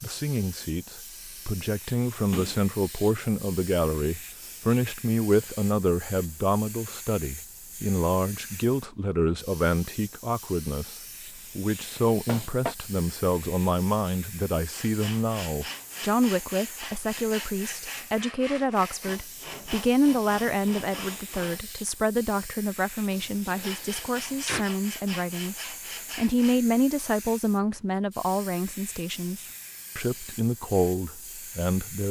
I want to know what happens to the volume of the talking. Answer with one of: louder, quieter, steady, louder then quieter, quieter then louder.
steady.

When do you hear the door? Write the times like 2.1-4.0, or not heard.
2.3-3.2, 11.9-12.8, 23.1-24.6.